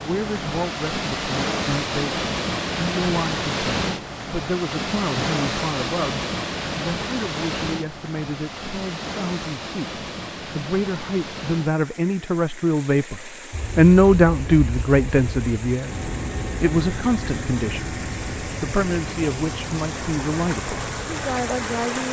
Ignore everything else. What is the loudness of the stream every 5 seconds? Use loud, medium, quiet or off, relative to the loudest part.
loud, loud, medium, medium, loud.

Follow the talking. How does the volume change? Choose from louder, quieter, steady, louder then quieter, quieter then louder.
louder then quieter.